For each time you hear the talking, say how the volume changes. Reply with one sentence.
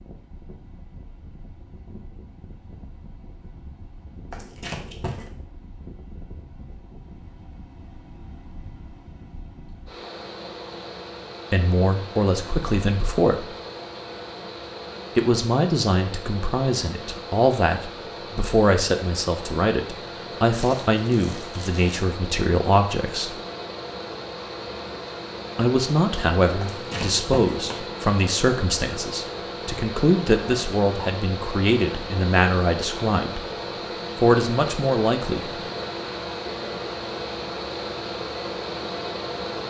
The talking can be heard briefly from 11.5 to 13.5 s; from 15.2 to 23.4 s, at a steady volume; from 25.6 to 33.5 s, at a steady volume; and briefly from 34.1 to 35.6 s.